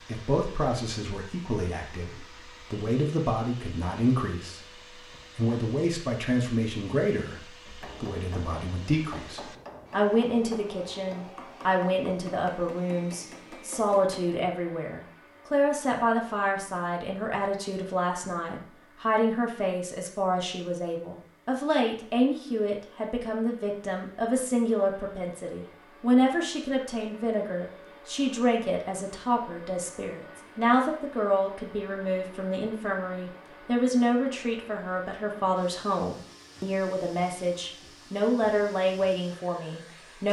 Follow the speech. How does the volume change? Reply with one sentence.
The loudness of the speech stays about the same.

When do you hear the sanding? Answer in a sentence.
The sanding can't be heard in this clip.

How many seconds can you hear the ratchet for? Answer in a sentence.
The ratchet can't be heard in this clip.